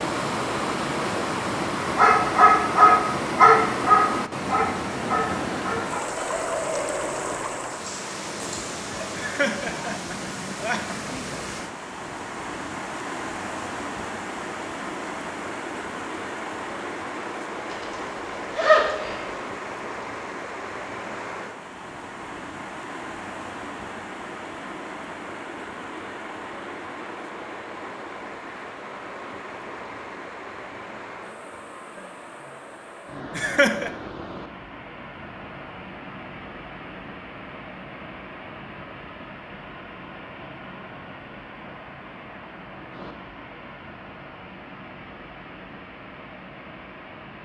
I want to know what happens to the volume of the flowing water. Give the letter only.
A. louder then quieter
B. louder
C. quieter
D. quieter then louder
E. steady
C.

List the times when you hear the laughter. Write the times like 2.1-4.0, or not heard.
9.2-11.2, 33.4-33.9.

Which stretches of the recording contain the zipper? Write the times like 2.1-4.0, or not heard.
17.7-19.4.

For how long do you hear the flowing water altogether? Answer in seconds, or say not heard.
47 s.